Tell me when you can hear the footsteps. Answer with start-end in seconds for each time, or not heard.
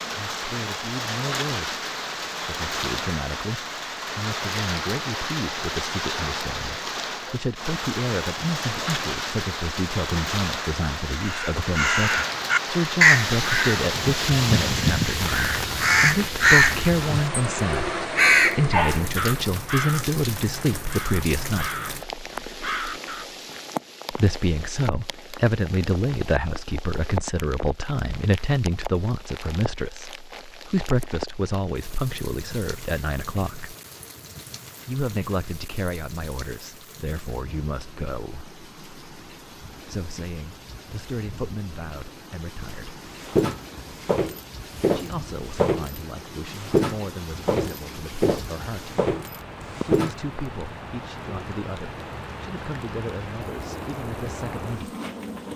43.2-46.0, 46.6-50.1.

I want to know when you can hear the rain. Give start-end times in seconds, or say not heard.
0.0-55.5.